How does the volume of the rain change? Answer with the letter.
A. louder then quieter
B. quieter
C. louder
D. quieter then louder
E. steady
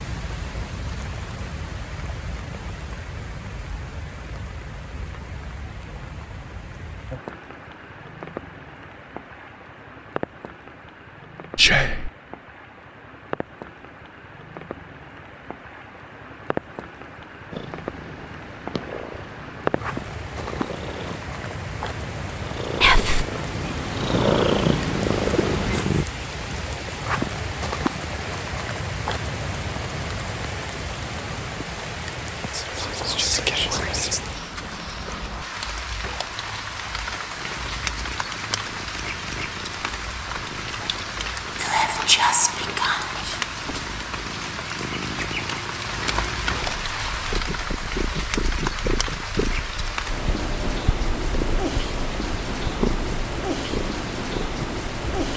C.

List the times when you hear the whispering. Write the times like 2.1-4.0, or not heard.
11.6-12.1, 22.8-23.2, 32.5-34.2, 41.5-43.4.